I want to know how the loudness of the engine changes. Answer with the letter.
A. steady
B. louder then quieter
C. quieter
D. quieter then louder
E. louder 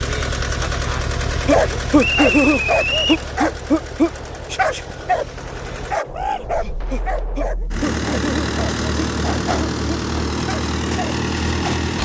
D.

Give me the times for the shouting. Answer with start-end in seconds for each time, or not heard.
not heard.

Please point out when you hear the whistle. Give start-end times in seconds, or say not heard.
2.0-3.2.